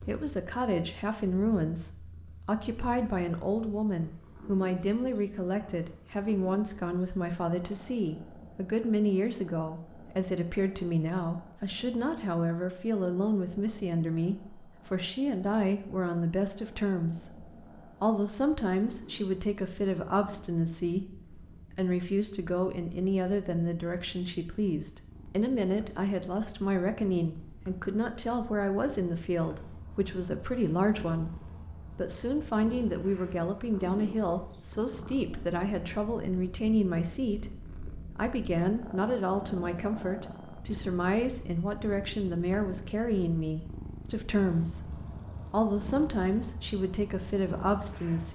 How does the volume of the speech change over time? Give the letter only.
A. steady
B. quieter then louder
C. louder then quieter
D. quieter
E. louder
A.